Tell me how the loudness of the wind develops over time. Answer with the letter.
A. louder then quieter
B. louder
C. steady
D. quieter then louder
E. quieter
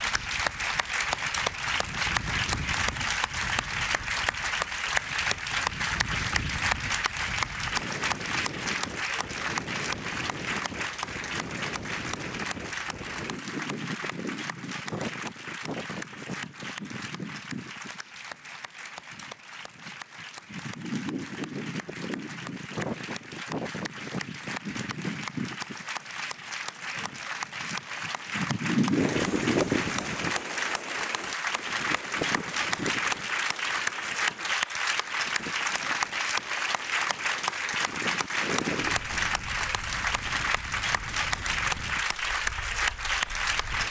A.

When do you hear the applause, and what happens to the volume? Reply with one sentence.
The applause can be heard from 0.0 to 43.8 s, getting quieter then louder.